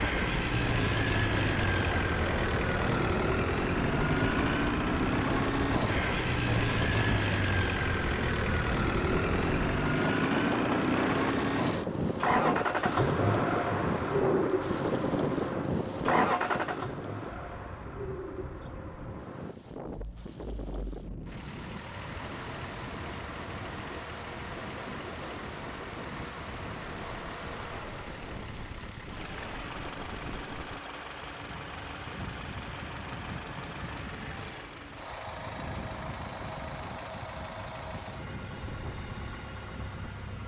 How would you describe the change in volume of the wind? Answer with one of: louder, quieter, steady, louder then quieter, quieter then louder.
quieter.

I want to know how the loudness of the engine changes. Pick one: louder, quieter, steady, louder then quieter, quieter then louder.
quieter.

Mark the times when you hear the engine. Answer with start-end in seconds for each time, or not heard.
0.0-40.4.